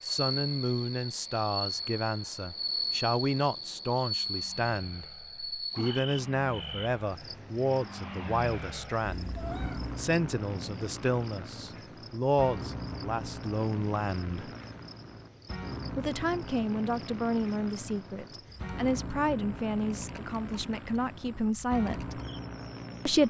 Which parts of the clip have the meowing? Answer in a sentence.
The meowing can be heard from 9.0 to 9.9 s.